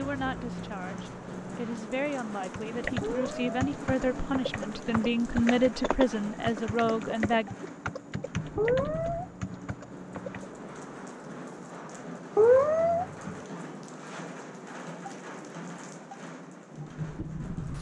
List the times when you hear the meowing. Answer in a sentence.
You can hear the meowing from 3.0 to 3.7 s, from 8.6 to 9.3 s and from 12.3 to 13.3 s.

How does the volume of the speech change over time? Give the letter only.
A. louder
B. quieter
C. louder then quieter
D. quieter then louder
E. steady
A.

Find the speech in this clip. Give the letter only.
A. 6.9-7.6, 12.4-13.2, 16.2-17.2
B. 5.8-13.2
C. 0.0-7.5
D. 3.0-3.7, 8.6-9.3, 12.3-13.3
C.